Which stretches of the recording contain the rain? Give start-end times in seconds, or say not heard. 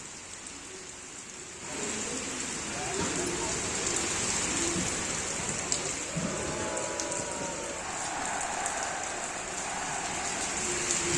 0.0-11.1.